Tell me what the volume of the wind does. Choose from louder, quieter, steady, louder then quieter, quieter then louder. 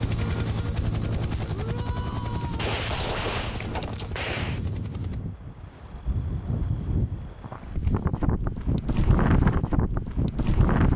louder.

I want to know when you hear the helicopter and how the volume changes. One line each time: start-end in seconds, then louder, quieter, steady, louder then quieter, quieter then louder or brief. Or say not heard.
0.0-5.2 quieter.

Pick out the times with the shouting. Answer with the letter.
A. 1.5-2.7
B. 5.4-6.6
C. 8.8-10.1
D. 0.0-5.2
A.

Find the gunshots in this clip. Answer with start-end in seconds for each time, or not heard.
2.5-4.6.